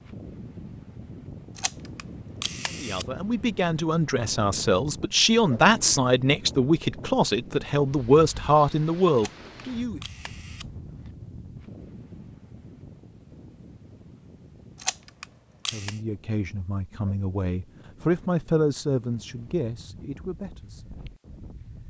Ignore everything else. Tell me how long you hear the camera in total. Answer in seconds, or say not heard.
5 s.